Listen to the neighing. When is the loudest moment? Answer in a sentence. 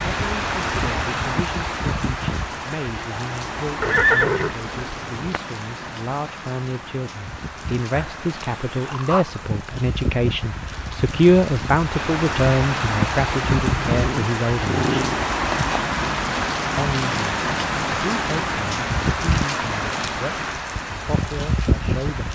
The volume of the neighing peaks at 4 seconds.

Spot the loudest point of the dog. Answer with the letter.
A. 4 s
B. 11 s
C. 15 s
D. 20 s
C.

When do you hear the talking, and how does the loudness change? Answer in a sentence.
You can hear the talking from 0.0 to 14.8 s, getting louder; and from 16.8 to 22.3 s, at a steady volume.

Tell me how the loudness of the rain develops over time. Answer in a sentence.
The loudness of the rain goes down, then up.